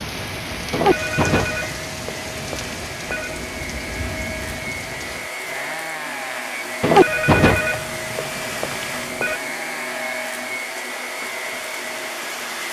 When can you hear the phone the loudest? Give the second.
7 s.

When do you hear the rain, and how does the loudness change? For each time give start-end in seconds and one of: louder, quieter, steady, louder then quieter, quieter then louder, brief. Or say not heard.
0.0-12.6 steady.